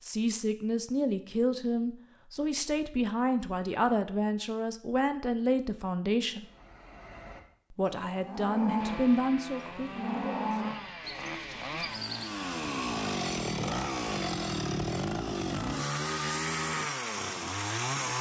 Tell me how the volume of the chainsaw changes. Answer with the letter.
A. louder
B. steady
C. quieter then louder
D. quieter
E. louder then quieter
A.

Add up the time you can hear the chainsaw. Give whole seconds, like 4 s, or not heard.
9 s.